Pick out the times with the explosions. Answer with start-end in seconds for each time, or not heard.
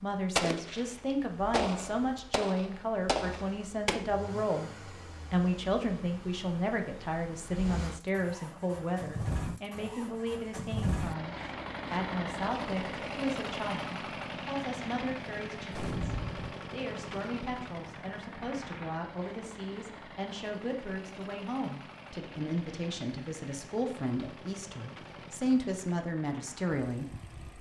0.3-4.0, 15.7-16.5.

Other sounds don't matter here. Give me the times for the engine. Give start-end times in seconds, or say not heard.
0.0-27.5.